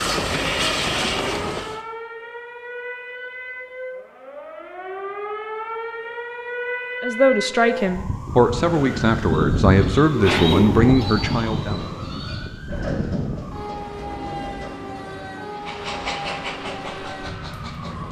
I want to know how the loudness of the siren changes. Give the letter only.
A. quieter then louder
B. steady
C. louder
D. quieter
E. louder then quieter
E.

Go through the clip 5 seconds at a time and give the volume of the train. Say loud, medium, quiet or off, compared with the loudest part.
loud, off, off, medium.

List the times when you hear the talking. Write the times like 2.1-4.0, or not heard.
7.0-11.8.